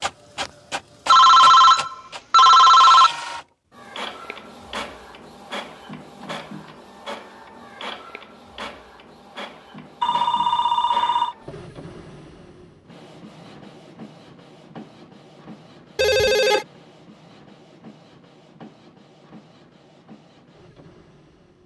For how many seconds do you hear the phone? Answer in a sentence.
The phone can be heard for 4 seconds in total.